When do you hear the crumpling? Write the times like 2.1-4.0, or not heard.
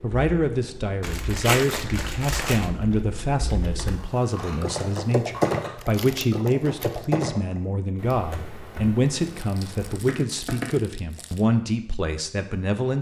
1.0-2.7, 5.8-7.0, 9.2-11.4.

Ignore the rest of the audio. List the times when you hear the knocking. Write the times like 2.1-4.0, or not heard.
not heard.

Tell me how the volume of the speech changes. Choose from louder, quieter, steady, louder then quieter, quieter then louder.
steady.